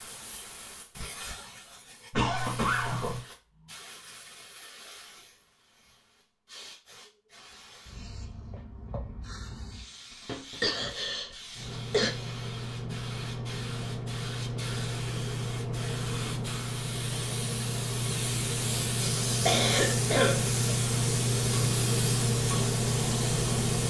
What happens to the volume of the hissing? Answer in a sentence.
The loudness of the hissing goes up.